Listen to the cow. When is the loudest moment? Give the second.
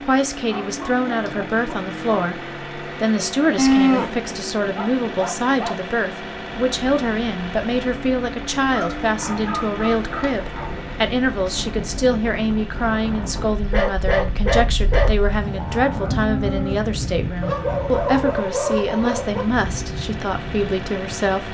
4 s.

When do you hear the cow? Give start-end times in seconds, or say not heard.
3.5-5.2, 15.0-16.9.